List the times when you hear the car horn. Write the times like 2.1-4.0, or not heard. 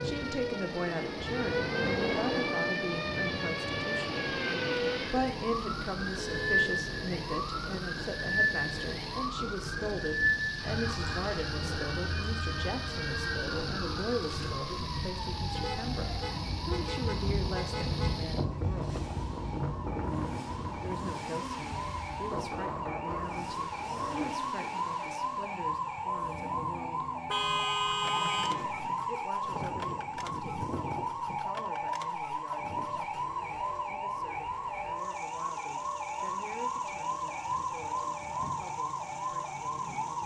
6.2-6.7, 15.6-18.1, 27.2-28.6.